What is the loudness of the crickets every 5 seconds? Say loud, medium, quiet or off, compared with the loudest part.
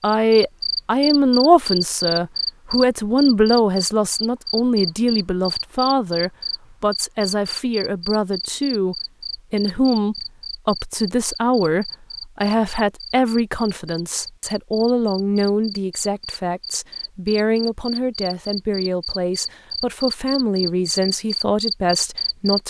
loud, medium, medium, medium, loud.